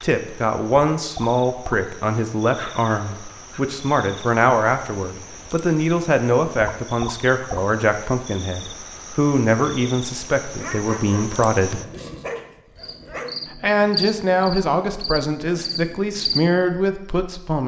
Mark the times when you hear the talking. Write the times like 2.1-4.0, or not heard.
0.0-11.8, 13.5-17.6.